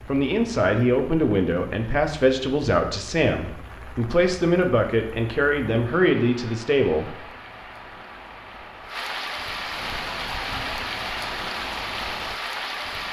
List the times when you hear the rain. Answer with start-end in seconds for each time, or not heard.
0.0-13.0.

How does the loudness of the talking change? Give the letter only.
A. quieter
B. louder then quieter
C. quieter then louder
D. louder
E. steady
E.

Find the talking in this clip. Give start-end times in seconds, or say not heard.
0.1-7.2.